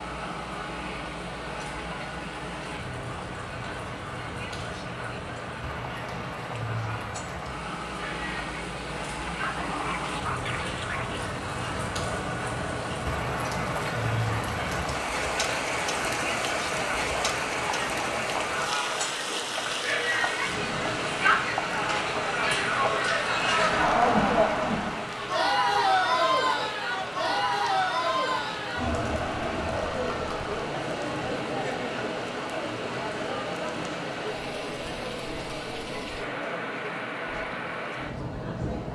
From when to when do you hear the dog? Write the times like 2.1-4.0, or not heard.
9.4-11.2.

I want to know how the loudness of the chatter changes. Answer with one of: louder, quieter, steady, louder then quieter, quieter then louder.
louder then quieter.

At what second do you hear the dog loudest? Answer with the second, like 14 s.
10 s.